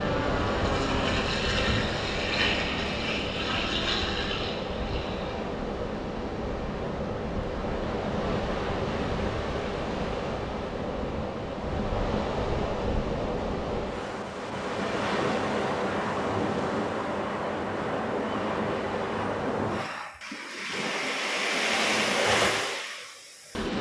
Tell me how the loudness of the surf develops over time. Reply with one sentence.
The loudness of the surf stays about the same.